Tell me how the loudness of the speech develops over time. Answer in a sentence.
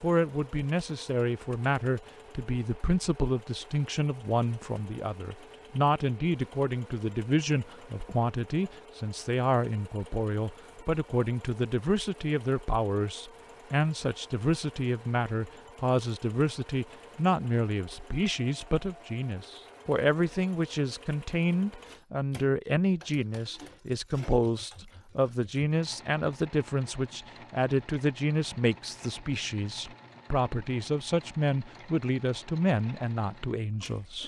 The volume of the speech stays about the same.